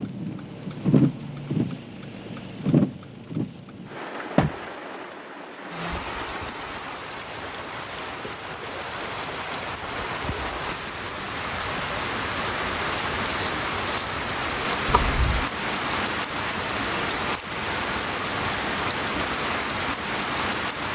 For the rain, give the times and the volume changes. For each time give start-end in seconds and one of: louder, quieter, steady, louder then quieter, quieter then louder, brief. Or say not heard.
0.0-20.8 quieter then louder.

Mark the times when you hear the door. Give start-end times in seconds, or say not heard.
14.8-15.5.